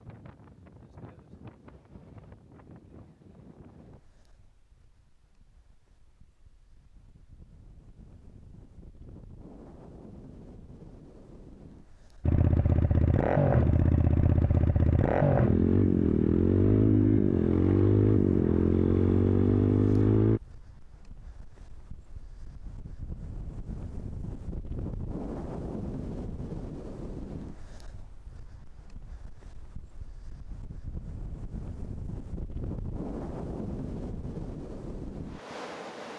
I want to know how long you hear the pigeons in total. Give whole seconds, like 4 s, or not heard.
not heard.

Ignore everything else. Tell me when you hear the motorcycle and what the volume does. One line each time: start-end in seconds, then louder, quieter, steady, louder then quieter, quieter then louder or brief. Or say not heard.
12.2-20.4 steady.